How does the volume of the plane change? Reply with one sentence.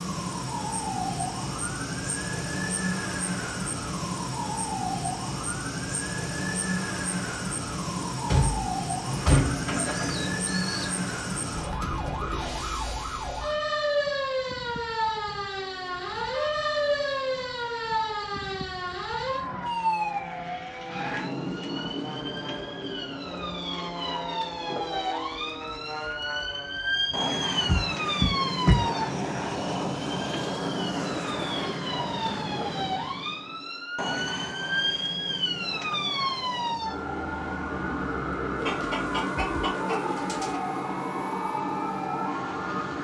The volume of the plane goes up, then down.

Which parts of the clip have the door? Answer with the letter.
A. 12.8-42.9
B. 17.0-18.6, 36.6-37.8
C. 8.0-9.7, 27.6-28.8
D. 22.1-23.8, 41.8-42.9
C.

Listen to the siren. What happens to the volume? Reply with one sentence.
The loudness of the siren stays about the same.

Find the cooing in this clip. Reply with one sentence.
The cooing can be heard from 9.1 to 11.1 s and from 38.5 to 40.6 s.